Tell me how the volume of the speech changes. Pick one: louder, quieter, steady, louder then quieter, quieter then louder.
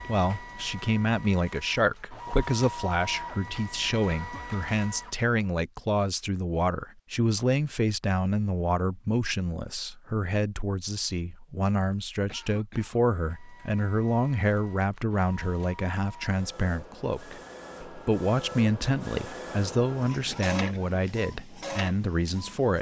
steady.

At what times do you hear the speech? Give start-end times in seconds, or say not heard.
0.1-22.7.